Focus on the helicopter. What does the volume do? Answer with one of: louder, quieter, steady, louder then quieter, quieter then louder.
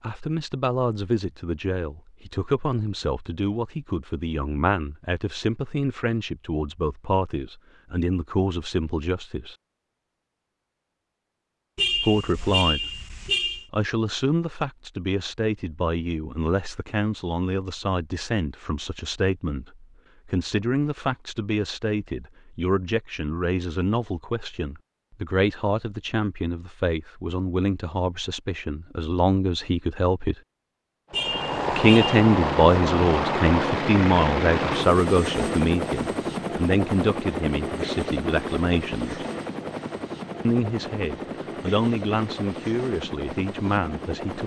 quieter.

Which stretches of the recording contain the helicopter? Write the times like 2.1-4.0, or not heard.
31.1-44.4.